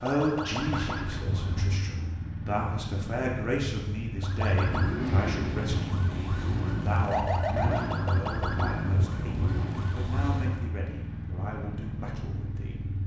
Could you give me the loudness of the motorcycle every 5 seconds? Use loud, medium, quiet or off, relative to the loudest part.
loud, loud, medium.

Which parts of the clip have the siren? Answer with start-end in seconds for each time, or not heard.
0.0-1.9, 4.2-10.7.